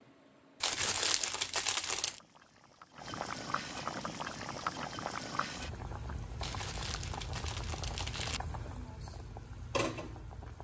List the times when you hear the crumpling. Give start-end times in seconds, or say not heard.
0.6-2.2, 6.4-8.4.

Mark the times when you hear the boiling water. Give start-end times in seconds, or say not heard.
0.0-10.5.